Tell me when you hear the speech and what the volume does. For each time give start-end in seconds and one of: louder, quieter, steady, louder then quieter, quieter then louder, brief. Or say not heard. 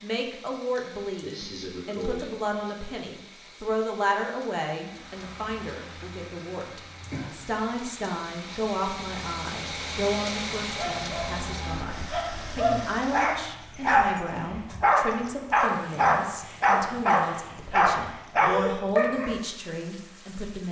0.0-20.6 steady.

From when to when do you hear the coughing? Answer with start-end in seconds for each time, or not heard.
0.6-2.5, 7.0-7.5, 18.4-18.9.